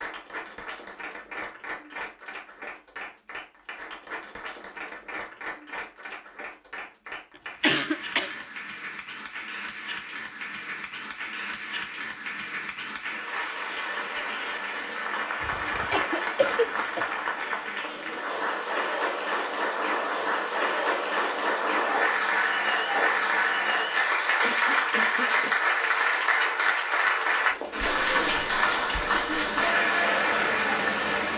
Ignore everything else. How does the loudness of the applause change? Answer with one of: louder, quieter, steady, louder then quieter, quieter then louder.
louder.